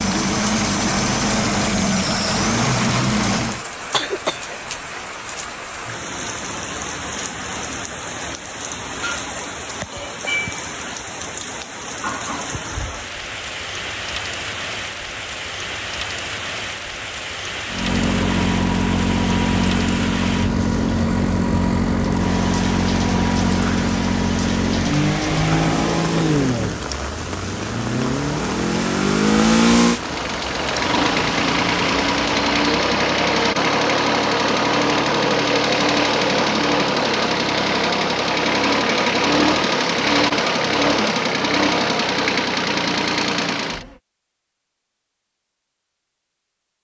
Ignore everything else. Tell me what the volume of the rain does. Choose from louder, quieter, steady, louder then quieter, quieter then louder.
steady.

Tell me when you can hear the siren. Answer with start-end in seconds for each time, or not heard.
not heard.